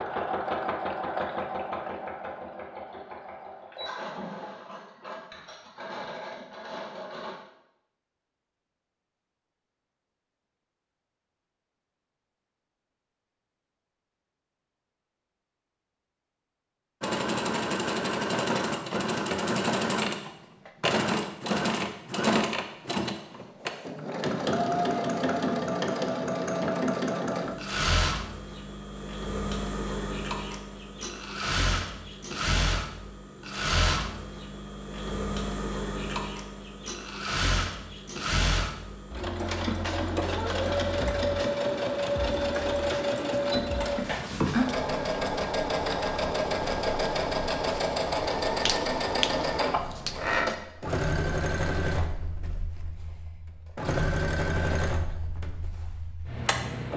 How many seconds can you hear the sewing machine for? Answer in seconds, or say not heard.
47 s.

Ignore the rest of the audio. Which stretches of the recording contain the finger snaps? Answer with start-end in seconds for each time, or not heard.
48.6-50.1.